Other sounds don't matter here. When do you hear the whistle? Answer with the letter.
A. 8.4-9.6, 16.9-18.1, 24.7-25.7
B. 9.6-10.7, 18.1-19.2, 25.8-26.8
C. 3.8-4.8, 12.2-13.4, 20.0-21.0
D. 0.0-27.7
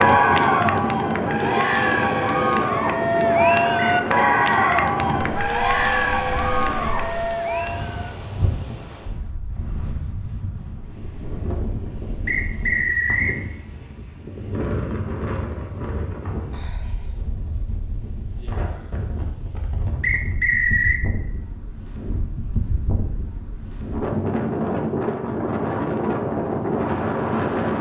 C.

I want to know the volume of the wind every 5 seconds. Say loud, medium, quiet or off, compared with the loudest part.
loud, medium, medium, medium, medium, loud.